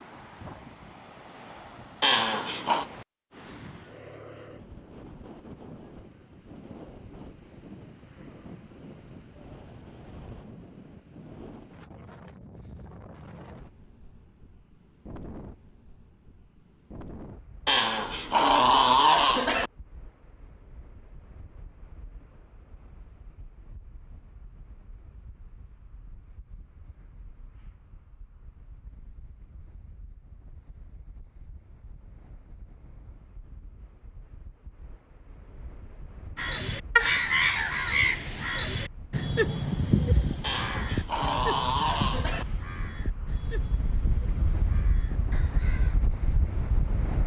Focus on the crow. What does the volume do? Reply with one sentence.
The volume of the crow goes down.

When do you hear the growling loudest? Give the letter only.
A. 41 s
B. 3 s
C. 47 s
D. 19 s
D.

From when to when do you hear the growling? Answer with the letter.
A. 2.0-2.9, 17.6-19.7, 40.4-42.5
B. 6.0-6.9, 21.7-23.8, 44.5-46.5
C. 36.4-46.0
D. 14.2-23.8
A.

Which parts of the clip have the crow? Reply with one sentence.
You can hear the crow from 36.4 to 46.0 s.